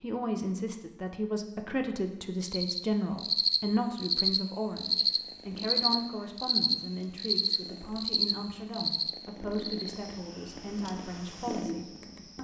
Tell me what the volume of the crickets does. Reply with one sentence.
The volume of the crickets goes down.